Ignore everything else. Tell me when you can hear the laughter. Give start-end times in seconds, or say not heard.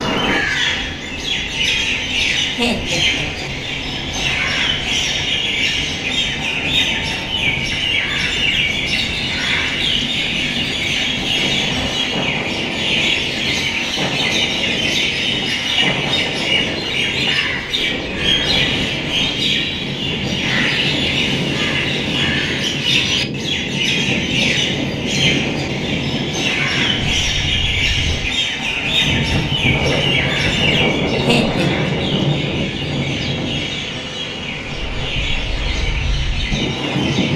2.5-3.8, 31.2-31.7.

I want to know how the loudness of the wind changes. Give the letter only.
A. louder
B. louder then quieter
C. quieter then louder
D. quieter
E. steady
A.